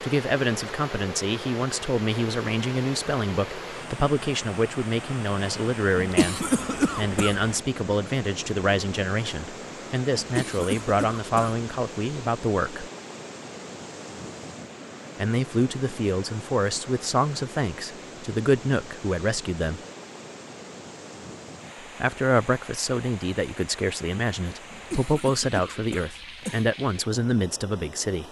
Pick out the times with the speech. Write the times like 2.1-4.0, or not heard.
0.0-12.9, 15.2-19.8, 21.8-28.2.